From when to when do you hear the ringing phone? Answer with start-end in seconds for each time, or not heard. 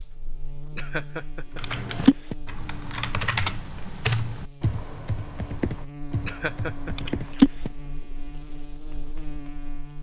1.6-2.4, 7.0-7.7.